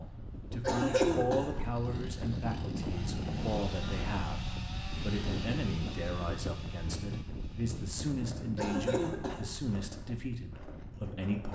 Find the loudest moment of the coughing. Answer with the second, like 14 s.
1 s.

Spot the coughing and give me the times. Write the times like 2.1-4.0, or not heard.
0.6-1.6, 8.6-9.6.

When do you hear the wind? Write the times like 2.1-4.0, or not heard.
0.0-11.3.